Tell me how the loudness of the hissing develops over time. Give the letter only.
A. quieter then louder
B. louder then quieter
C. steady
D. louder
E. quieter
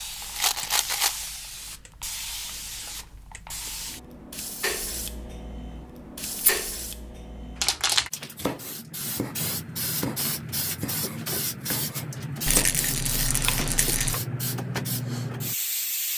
D.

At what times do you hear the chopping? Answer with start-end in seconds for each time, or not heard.
8.3-14.2.